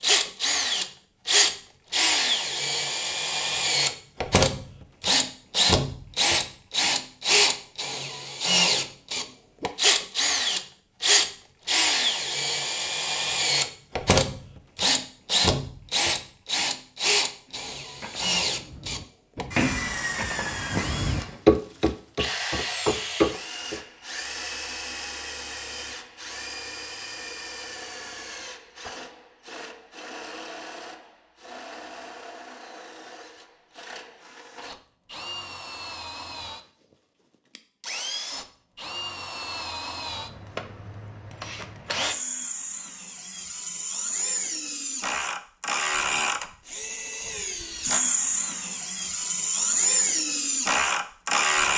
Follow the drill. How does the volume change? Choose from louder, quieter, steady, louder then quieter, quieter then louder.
quieter then louder.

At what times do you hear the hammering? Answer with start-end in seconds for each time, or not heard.
18.0-23.8.